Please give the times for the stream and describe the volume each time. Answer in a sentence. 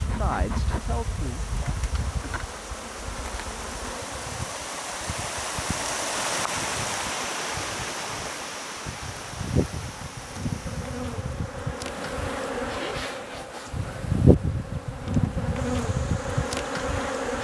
You can hear the stream from 0.0 to 17.3 s, getting louder then quieter.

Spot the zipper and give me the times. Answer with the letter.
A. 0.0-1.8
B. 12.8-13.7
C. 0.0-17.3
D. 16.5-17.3
B.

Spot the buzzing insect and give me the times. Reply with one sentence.
The buzzing insect can be heard from 0.0 to 17.3 s.